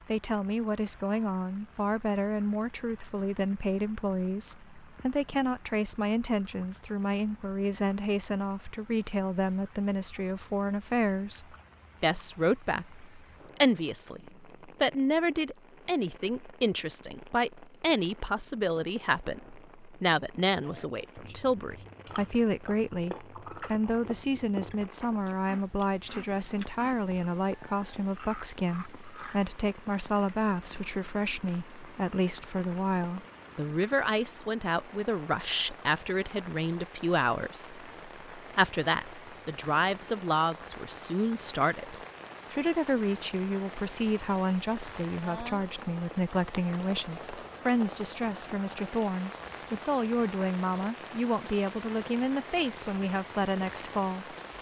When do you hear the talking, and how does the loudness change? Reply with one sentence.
The talking can be heard from 0.1 to 54.2 s, at a steady volume.